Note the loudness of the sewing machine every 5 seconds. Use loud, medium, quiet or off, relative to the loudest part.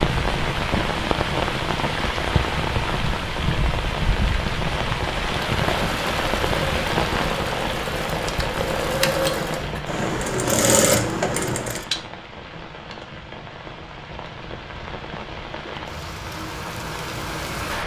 off, medium, loud, off.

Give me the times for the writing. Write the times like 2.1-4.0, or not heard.
not heard.